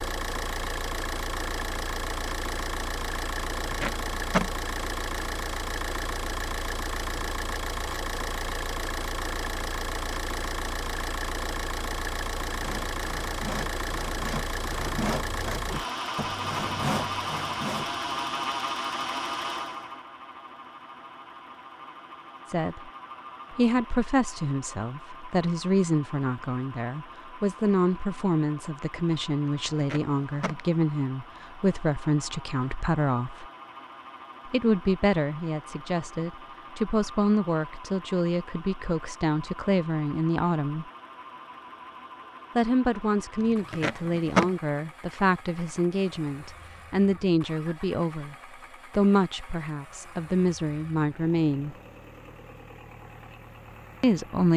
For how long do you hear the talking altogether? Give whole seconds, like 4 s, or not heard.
26 s.